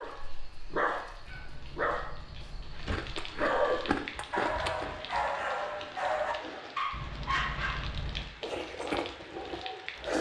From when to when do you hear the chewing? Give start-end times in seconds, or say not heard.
2.9-6.8, 8.4-10.1.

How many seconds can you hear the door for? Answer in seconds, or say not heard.
3 s.